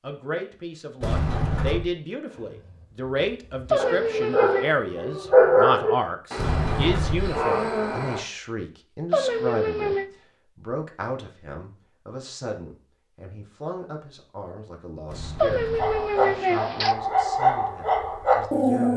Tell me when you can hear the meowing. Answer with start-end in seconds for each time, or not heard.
3.7-4.8, 9.1-10.1, 15.4-16.9.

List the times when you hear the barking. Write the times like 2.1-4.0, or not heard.
2.4-8.2, 15.8-18.9.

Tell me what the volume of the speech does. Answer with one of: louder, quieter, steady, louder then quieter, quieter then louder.
quieter.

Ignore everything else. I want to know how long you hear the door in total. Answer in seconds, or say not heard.
3 s.